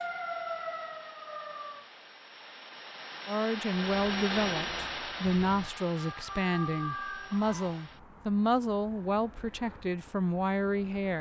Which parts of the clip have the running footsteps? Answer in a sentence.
You can't hear the running footsteps here.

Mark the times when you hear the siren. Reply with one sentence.
The siren can be heard from 0.0 to 1.9 s and from 3.8 to 7.9 s.